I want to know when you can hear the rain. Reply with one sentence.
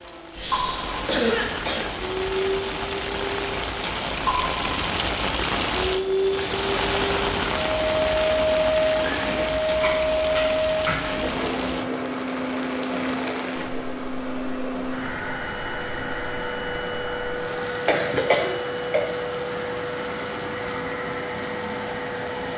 The rain can be heard from 0.0 to 22.5 s.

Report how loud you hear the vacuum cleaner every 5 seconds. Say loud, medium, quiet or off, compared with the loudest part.
medium, loud, loud, medium, medium.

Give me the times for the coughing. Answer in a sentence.
You can hear the coughing from 0.3 to 1.9 s, from 9.8 to 11.6 s and from 17.7 to 19.0 s.